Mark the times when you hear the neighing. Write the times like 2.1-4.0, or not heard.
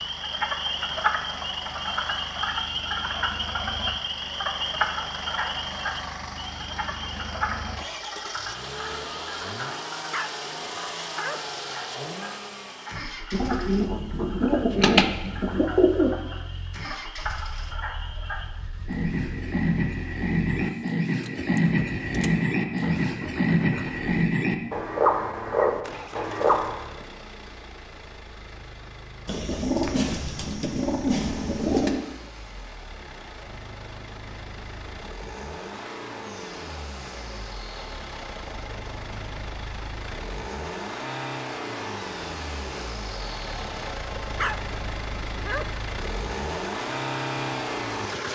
not heard.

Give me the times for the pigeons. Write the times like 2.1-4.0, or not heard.
13.3-16.1, 29.2-32.0.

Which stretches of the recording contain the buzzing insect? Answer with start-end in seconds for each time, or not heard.
not heard.